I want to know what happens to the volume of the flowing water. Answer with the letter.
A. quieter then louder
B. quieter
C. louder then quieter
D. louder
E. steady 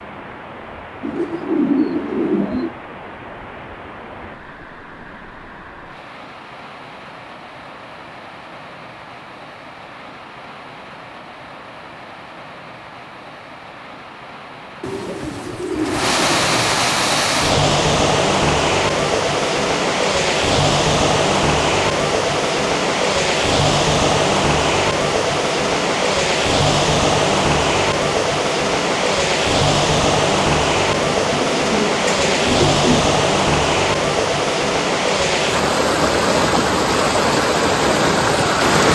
D.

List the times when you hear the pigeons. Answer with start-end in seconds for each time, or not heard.
1.0-2.8, 14.8-16.8, 31.1-33.0.